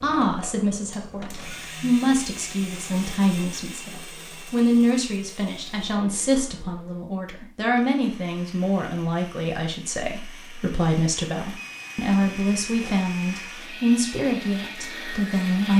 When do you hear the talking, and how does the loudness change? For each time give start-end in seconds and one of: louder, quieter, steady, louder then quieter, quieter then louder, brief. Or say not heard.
0.0-15.7 steady.